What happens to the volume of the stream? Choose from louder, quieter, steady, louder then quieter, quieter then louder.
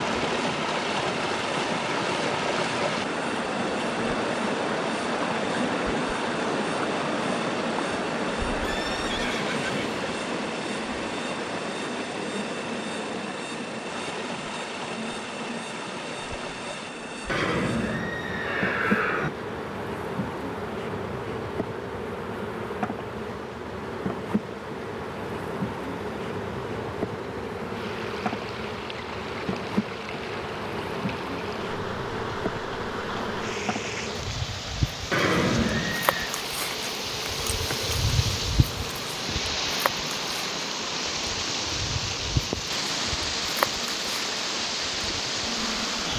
quieter then louder.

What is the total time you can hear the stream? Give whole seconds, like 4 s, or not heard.
46 s.